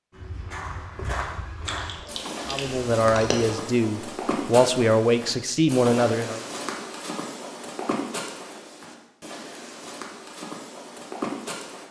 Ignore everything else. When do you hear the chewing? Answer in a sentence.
You can hear the chewing from 1.6 to 3.5 s.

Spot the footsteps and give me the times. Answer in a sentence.
You can hear the footsteps from 0.1 to 11.8 s.